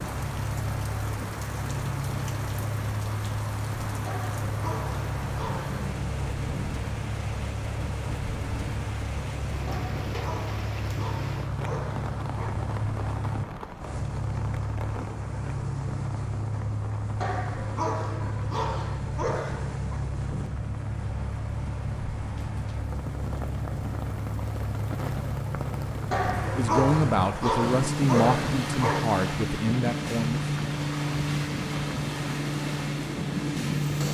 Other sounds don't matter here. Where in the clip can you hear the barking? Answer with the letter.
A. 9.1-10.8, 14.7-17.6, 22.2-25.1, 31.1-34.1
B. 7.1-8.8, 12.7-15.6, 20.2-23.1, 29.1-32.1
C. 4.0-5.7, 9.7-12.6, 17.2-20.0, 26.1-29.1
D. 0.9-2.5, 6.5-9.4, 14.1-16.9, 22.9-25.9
C.